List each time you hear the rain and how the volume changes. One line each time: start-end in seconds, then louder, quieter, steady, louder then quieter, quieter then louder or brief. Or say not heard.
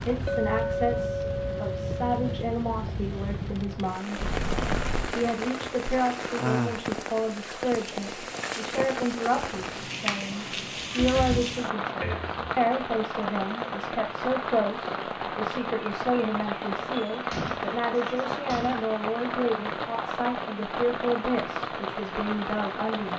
0.0-23.1 steady.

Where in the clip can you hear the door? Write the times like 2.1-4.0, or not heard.
4.2-5.2, 10.8-12.3, 17.1-18.9.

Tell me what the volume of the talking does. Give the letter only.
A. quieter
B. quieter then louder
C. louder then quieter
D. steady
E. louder
D.